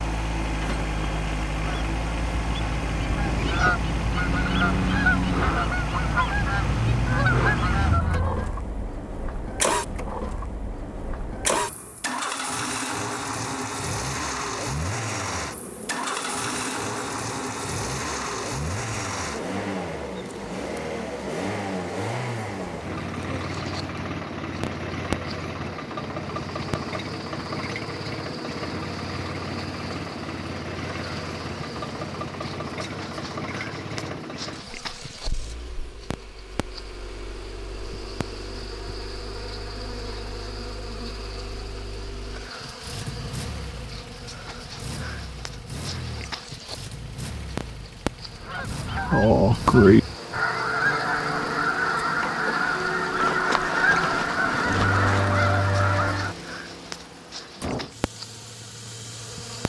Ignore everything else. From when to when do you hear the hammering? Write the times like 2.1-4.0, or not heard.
not heard.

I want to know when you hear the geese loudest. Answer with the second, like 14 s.
50 s.